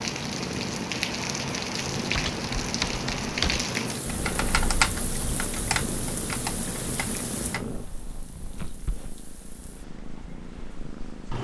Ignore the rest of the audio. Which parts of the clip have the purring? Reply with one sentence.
You can hear the purring from 0.0 to 11.3 s.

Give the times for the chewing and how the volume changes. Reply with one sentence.
The chewing can't be heard in this clip.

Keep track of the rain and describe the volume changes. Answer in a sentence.
The loudness of the rain goes down.